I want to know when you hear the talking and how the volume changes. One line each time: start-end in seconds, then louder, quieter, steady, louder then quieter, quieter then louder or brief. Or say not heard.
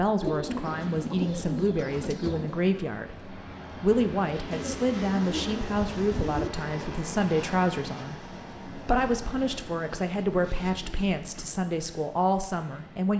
0.0-13.1 steady.